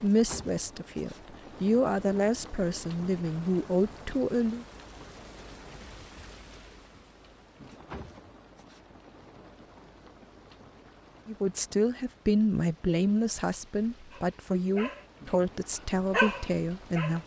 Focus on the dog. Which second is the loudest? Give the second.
16 s.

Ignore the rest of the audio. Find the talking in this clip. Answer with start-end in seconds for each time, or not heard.
0.0-4.7, 11.2-17.2.